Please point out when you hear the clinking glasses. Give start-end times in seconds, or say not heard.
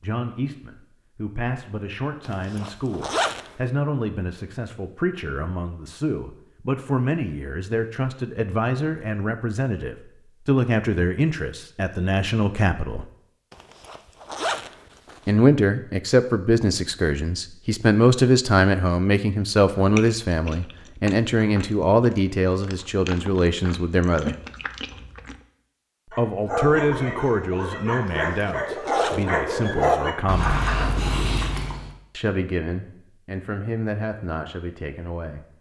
not heard.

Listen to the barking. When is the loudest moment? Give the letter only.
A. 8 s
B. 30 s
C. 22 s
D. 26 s
B.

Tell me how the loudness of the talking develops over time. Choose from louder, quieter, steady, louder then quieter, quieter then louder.
louder then quieter.